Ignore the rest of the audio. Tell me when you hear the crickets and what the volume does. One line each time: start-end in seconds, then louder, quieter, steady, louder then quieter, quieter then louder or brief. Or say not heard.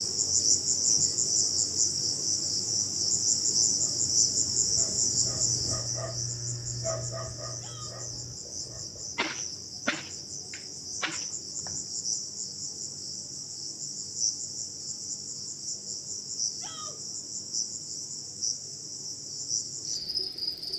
0.0-20.7 quieter.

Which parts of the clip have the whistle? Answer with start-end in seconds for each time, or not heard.
not heard.